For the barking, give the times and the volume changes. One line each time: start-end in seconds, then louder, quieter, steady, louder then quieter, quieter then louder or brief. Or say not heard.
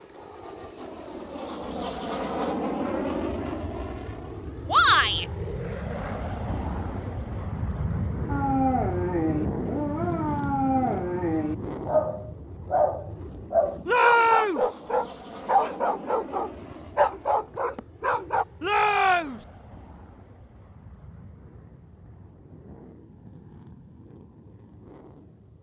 8.2-18.4 steady.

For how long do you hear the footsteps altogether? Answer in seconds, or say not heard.
not heard.